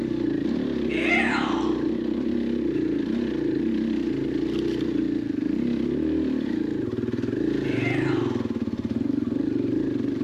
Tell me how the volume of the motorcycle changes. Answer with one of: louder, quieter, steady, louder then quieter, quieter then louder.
steady.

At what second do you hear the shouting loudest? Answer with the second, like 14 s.
1 s.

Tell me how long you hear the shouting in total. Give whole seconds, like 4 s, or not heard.
2 s.